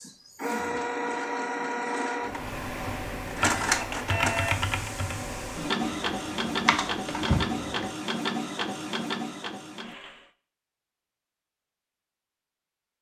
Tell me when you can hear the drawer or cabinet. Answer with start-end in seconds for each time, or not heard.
not heard.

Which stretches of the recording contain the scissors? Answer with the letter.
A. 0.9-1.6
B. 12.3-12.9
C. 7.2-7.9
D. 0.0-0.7
C.